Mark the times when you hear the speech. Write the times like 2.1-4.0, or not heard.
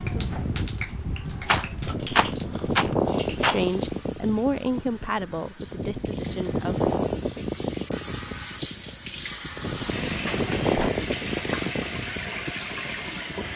3.5-6.9.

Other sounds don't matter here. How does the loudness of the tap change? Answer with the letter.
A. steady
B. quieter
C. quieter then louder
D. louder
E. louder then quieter
C.